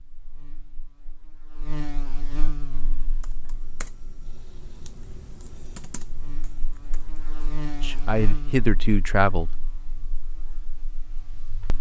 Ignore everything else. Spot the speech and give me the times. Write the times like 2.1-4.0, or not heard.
7.8-9.5.